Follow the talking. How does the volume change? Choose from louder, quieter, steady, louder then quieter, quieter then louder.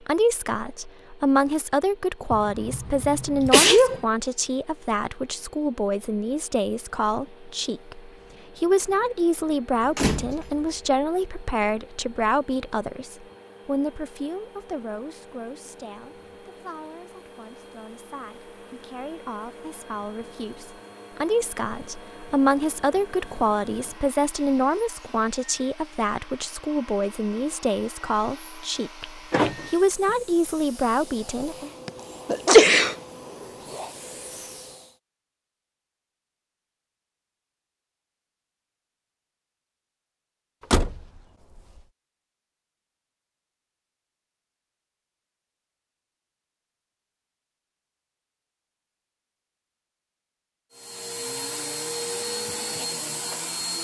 quieter then louder.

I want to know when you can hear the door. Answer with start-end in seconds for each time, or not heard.
9.9-10.6, 29.0-30.1, 40.7-41.6.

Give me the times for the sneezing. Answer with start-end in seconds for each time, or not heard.
2.3-4.0, 31.9-33.0.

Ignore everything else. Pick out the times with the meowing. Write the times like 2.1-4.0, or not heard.
not heard.